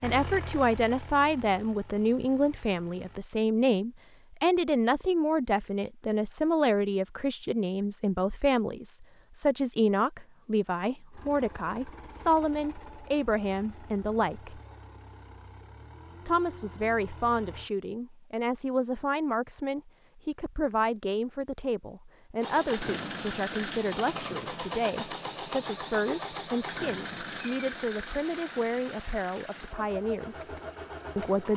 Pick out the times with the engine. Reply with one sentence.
The engine can be heard from 0.0 to 3.2 s, from 11.1 to 17.7 s and from 22.4 to 31.5 s.